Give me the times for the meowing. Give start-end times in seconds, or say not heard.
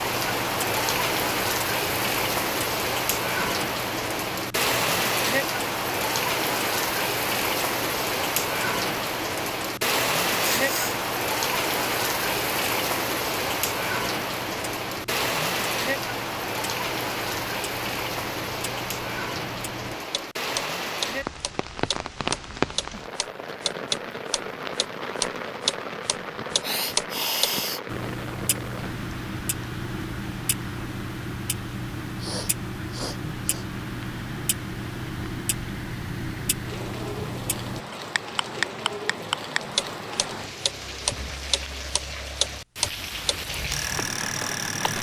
not heard.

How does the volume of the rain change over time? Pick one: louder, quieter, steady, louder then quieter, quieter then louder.
quieter.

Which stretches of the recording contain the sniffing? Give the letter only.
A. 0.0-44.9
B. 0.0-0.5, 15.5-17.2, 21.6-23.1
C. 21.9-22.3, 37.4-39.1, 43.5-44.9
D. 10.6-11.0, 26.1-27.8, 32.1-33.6
D.